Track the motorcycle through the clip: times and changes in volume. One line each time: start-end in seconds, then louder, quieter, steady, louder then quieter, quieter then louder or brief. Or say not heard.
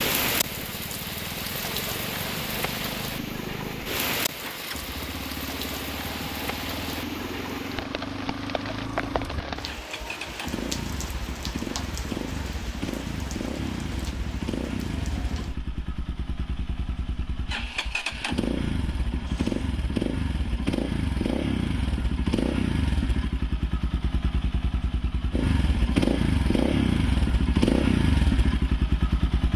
0.0-29.5 louder.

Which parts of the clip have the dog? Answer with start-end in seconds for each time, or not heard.
not heard.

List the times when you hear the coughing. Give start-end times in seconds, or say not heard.
not heard.